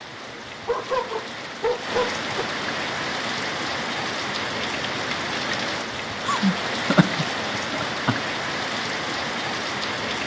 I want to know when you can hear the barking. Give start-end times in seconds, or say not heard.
0.3-2.5.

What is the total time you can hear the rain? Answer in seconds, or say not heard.
10 s.